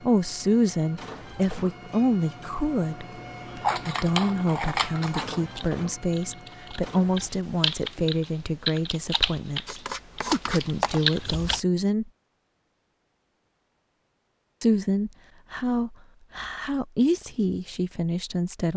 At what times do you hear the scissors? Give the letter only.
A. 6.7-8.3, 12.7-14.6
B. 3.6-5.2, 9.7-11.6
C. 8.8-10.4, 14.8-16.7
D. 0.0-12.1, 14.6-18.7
B.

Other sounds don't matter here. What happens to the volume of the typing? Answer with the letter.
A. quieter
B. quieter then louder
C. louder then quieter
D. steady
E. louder
E.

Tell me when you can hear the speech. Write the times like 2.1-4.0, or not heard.
0.0-12.1, 14.6-18.7.